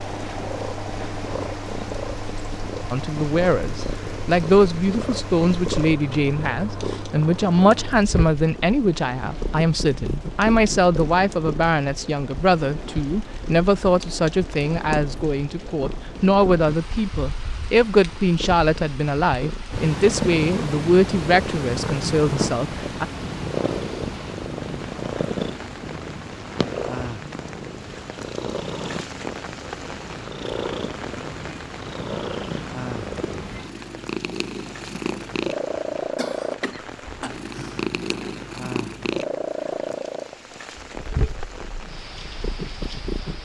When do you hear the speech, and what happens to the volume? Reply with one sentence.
The speech can be heard from 2.9 to 23.1 s, at a steady volume.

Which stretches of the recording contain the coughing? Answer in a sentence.
The coughing can be heard from 36.1 to 38.0 s.